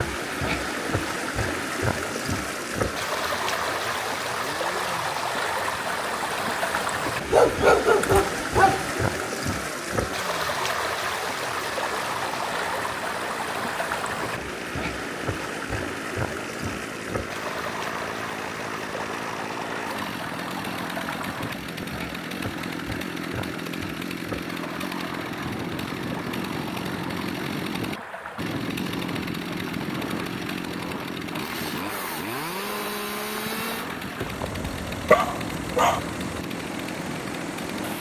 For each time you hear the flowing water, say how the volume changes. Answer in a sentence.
You can hear the flowing water from 0.0 to 37.9 s, getting quieter.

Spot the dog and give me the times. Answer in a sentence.
The dog can be heard from 7.3 to 8.9 s and from 34.2 to 36.0 s.